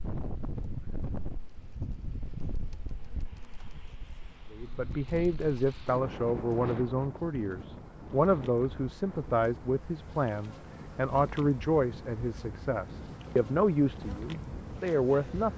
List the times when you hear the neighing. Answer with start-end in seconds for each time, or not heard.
not heard.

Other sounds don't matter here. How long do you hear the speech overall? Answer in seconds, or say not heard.
11 s.